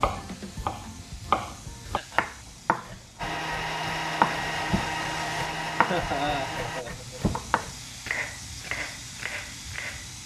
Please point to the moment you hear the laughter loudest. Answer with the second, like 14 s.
6 s.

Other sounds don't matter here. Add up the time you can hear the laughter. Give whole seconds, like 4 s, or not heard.
2 s.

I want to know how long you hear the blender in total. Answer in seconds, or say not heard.
4 s.